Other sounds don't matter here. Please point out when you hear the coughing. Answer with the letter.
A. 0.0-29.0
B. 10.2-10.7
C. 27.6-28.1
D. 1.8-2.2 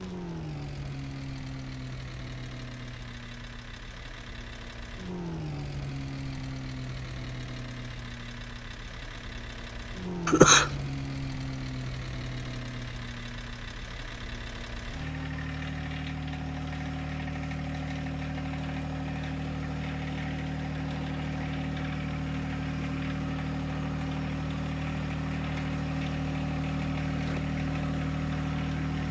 B.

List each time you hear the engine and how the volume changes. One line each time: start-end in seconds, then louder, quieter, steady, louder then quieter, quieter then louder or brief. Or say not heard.
0.0-29.0 louder.